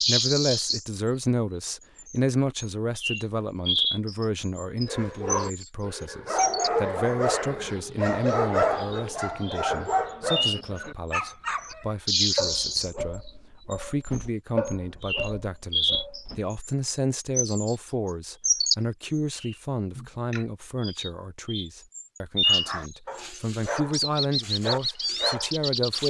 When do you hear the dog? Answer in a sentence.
The dog can be heard from 4.8 to 16.4 s and from 22.4 to 26.0 s.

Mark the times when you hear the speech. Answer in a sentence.
The speech can be heard from 0.1 to 26.0 s.